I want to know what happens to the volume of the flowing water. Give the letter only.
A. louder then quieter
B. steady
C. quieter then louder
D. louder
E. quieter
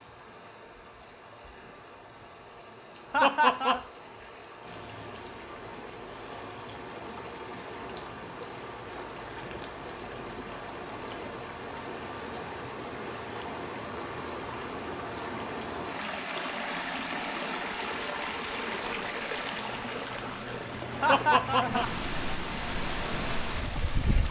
D.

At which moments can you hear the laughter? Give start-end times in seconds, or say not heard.
3.1-3.8, 21.0-21.9.